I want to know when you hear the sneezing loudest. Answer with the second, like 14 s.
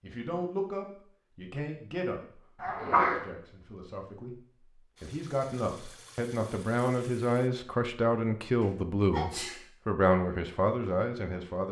3 s.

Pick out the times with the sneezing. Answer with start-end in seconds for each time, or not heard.
2.6-3.2, 8.6-9.6.